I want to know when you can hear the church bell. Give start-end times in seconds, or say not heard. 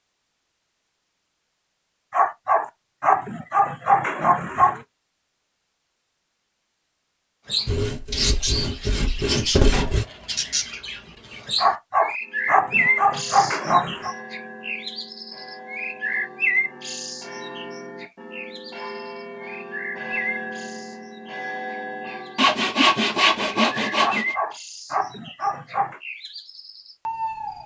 12.2-22.6.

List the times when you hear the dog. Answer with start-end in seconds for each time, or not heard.
2.1-4.8, 11.6-14.2, 24.0-26.0.